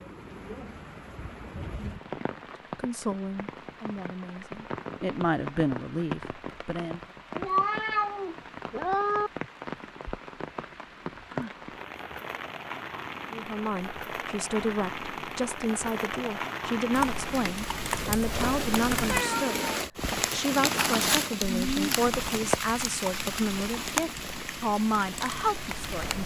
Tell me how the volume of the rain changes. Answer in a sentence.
The loudness of the rain goes up.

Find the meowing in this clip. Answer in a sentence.
You can hear the meowing from 7.3 to 9.3 s and from 19.1 to 19.6 s.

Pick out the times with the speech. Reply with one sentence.
The speech can be heard from 2.8 to 7.0 s and from 13.3 to 26.2 s.